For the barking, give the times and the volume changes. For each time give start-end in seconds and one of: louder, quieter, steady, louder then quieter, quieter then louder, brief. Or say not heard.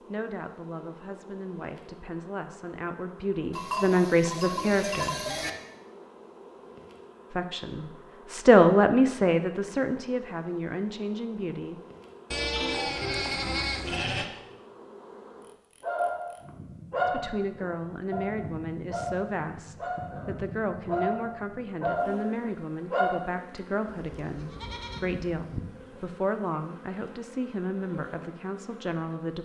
15.8-23.2 quieter then louder.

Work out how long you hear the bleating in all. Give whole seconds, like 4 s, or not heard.
6 s.